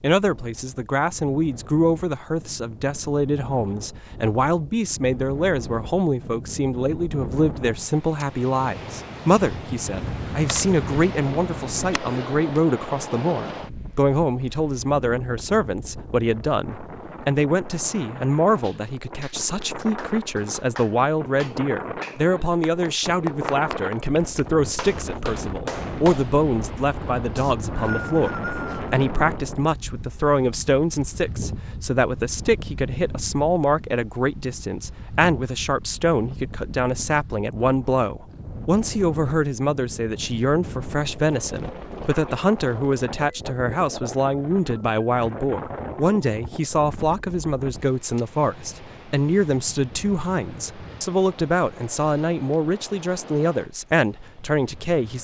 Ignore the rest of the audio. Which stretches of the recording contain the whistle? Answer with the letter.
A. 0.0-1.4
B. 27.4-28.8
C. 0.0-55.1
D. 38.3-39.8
B.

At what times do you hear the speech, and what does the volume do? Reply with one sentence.
The speech can be heard from 0.0 to 55.1 s, at a steady volume.